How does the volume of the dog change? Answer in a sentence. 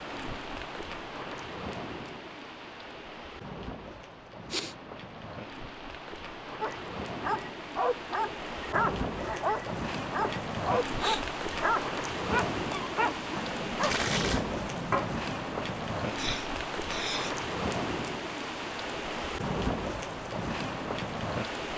The volume of the dog stays about the same.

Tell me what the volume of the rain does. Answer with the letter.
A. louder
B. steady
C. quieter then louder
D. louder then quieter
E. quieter
A.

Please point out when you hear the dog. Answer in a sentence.
You can hear the dog from 6.6 to 14.0 s.